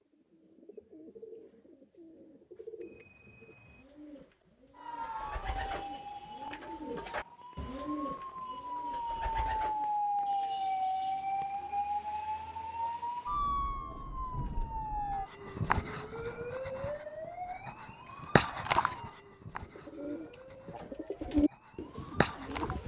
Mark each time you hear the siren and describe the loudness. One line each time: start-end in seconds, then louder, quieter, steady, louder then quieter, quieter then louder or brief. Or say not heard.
4.8-22.8 louder then quieter.